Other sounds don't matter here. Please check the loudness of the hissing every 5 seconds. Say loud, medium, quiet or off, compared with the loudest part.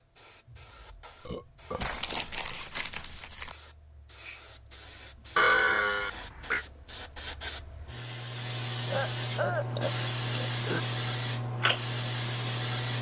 quiet, medium, loud.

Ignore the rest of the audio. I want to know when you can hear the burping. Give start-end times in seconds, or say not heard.
1.2-2.5, 5.3-6.7, 8.9-10.8.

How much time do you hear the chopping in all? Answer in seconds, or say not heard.
not heard.